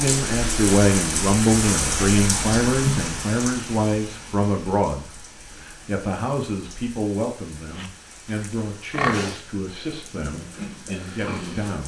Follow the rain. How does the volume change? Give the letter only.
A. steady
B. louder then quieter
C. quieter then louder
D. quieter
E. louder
D.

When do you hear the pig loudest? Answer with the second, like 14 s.
9 s.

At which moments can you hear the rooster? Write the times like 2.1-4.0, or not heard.
not heard.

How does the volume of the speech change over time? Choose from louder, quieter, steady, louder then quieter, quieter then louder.
quieter.